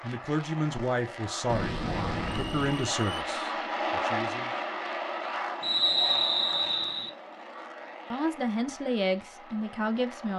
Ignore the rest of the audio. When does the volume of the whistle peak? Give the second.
6 s.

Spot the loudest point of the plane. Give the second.
4 s.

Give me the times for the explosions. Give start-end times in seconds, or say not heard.
1.4-2.8.